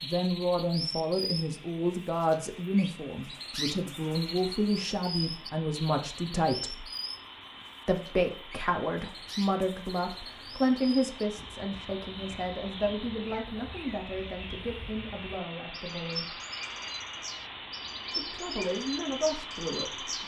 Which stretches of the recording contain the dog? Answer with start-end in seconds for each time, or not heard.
not heard.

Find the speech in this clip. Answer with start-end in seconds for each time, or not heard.
0.0-6.8, 7.8-16.4, 18.1-20.2.